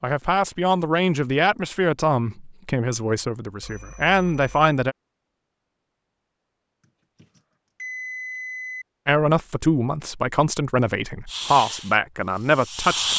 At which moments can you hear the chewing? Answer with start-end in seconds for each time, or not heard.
not heard.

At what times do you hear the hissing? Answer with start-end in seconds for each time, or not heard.
11.2-13.1.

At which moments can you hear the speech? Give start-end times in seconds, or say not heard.
0.0-5.0, 9.1-13.1.